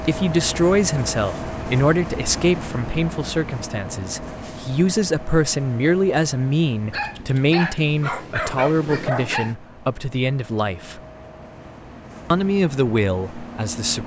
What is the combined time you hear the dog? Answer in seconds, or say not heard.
3 s.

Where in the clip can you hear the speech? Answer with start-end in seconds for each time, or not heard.
0.0-11.0, 12.3-14.0.